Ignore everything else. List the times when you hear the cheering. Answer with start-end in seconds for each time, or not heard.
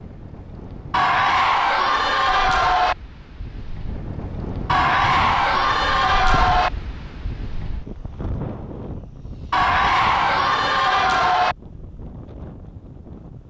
0.9-3.0, 4.7-6.7, 9.5-11.6.